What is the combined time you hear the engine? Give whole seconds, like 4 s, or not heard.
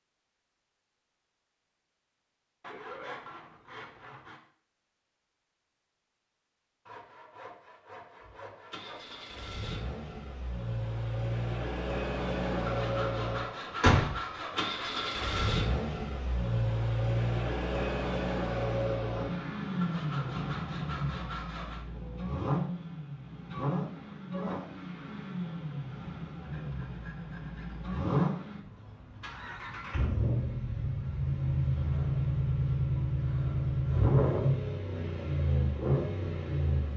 29 s.